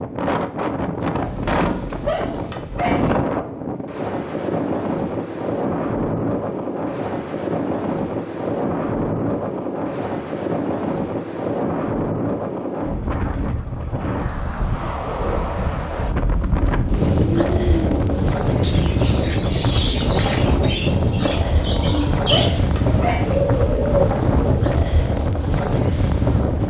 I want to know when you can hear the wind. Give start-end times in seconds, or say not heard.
0.0-26.6.